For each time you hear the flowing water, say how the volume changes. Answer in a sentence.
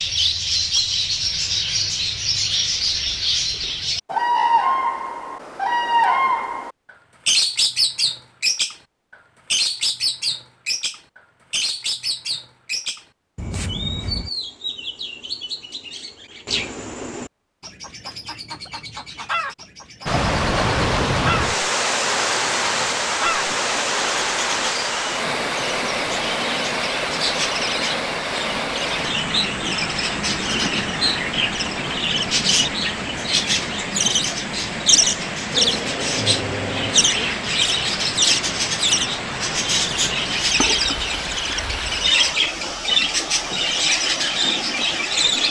You can hear the flowing water from 20.1 to 45.4 s, getting quieter.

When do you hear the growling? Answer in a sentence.
You can hear the growling from 35.5 to 37.3 s.